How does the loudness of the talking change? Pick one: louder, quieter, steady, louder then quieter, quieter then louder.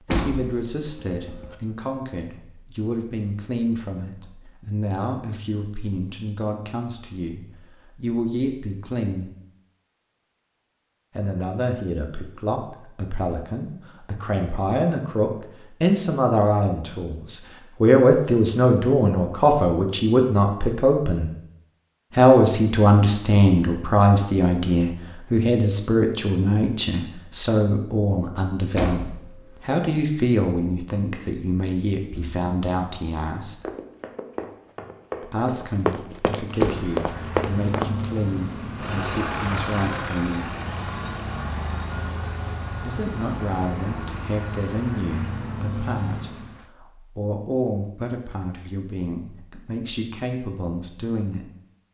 louder then quieter.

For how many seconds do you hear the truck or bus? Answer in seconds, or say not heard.
10 s.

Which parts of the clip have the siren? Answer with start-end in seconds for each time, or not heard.
not heard.